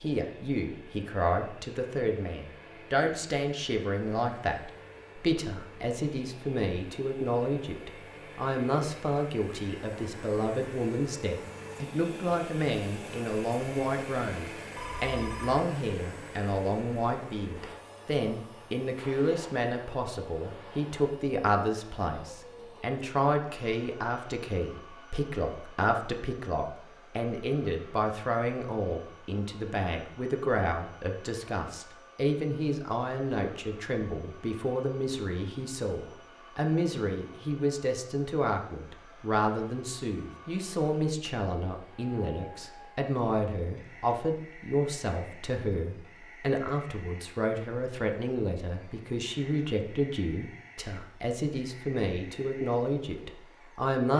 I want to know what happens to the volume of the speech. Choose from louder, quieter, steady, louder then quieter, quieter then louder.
steady.